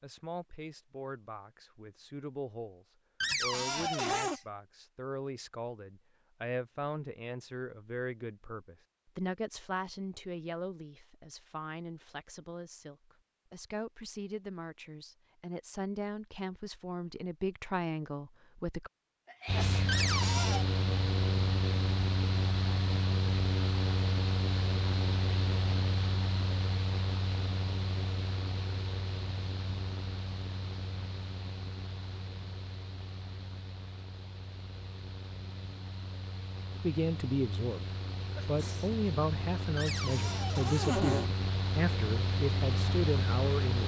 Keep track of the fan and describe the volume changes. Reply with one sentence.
The loudness of the fan goes down, then up.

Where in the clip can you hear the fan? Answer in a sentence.
The fan can be heard from 19.4 to 43.8 s.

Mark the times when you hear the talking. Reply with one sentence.
The talking can be heard from 0.0 to 18.9 s, from 36.8 to 37.9 s and from 38.5 to 43.8 s.